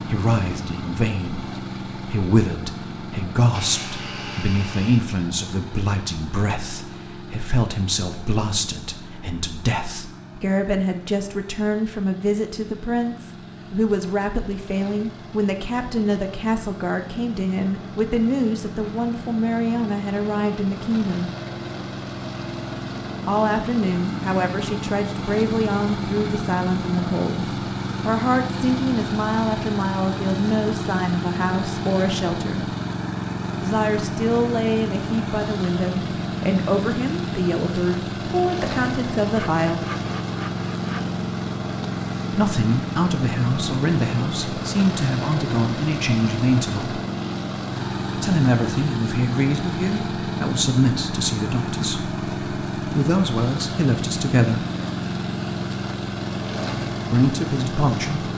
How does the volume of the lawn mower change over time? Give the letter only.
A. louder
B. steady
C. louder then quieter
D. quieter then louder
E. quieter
A.